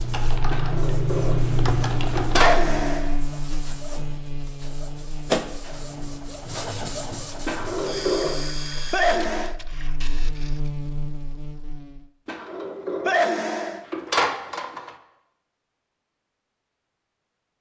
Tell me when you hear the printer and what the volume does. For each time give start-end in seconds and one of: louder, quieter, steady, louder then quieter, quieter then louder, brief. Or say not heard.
0.0-10.7 louder then quieter.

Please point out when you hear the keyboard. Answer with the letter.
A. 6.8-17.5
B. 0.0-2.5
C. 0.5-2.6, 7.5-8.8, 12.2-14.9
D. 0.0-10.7
B.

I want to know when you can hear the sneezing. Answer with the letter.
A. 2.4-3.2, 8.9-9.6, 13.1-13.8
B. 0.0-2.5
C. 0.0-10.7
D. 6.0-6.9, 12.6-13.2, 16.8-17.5
A.